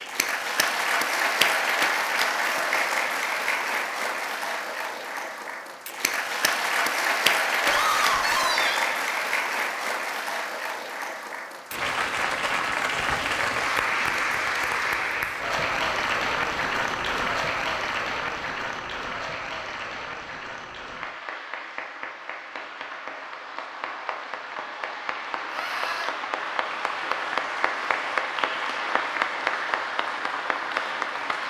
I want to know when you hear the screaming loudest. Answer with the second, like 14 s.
8 s.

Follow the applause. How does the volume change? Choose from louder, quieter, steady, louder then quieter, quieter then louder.
quieter then louder.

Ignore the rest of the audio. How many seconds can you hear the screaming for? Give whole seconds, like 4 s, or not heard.
2 s.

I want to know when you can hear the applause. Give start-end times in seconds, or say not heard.
0.0-31.4.